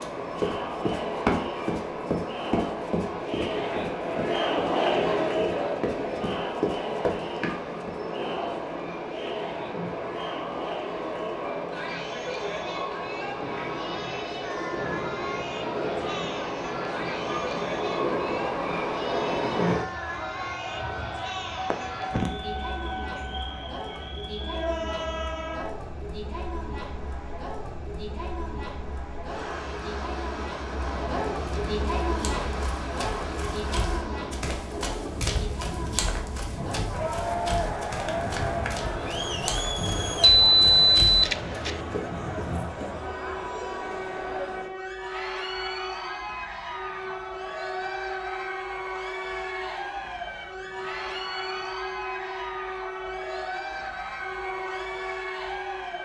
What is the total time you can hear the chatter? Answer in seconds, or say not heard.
56 s.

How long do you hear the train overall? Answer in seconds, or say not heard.
56 s.